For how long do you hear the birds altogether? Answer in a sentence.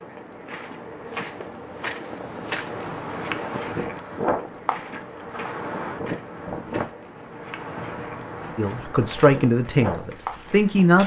You can't hear the birds here.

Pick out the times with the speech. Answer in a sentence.
You can hear the speech from 8.6 to 11.0 s.